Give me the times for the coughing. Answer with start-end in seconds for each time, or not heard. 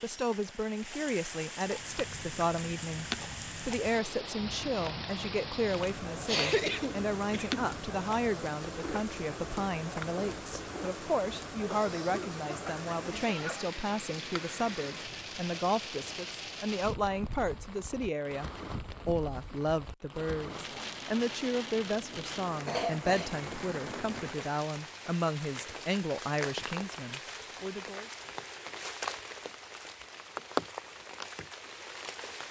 6.2-7.6, 11.7-13.7, 22.6-23.3.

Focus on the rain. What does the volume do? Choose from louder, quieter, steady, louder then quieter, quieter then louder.
steady.